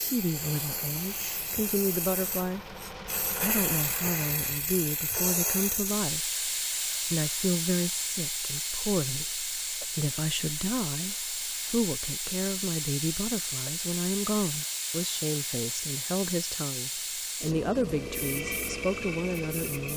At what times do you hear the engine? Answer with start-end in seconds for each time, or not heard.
0.0-4.2, 17.9-19.9.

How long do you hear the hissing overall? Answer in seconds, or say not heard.
20 s.